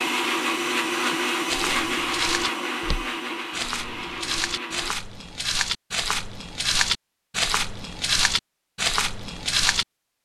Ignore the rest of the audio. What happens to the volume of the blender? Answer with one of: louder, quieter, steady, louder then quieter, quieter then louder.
quieter.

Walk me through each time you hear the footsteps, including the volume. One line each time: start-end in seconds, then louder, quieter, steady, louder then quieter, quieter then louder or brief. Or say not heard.
1.4-9.8 louder.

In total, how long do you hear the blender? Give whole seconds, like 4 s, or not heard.
5 s.